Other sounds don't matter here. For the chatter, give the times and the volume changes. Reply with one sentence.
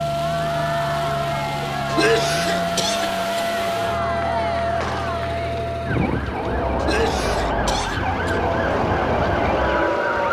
The chatter can be heard from 0.1 to 10.2 s, getting louder.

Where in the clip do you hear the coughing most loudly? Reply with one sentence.
The volume of the coughing peaks at 2 seconds.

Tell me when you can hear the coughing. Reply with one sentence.
The coughing can be heard from 1.9 to 3.5 s and from 6.8 to 8.3 s.